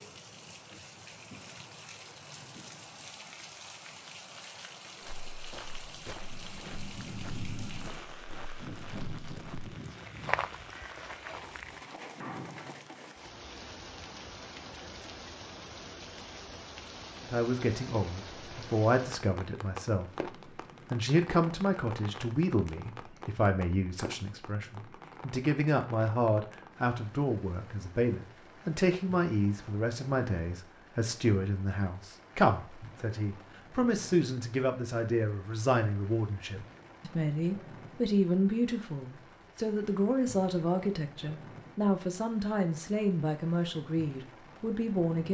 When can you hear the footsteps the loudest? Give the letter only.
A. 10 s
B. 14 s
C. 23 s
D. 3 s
A.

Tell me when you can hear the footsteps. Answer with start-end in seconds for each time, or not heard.
5.0-11.8.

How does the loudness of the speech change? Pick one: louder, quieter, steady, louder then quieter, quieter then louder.
steady.